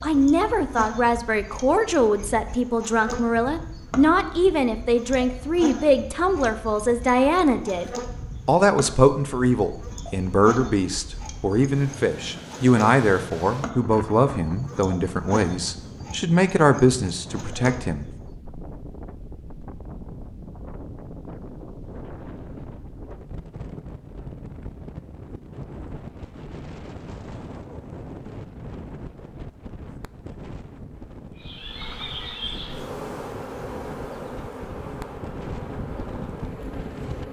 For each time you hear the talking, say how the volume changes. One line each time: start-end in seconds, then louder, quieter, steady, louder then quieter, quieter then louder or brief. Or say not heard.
0.0-18.1 steady.